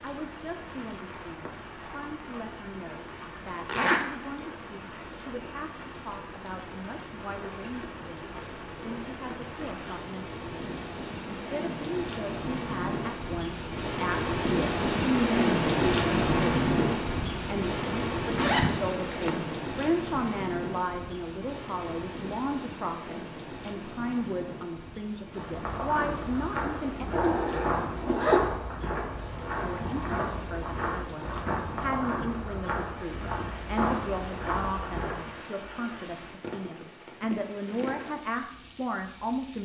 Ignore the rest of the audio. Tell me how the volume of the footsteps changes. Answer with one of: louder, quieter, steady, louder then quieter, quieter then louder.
steady.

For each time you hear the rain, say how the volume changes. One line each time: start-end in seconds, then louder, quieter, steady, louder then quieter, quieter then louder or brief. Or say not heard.
0.0-39.6 louder then quieter.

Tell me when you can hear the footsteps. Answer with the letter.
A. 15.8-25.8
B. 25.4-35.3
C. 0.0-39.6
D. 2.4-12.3
B.